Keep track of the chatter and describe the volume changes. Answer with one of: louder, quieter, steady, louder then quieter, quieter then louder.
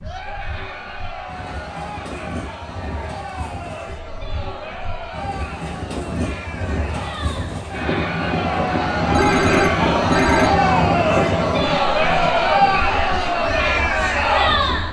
louder.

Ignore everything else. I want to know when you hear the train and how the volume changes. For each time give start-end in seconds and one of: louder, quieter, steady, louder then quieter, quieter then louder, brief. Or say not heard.
0.0-14.8 louder then quieter.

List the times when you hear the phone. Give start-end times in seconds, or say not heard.
9.1-10.5.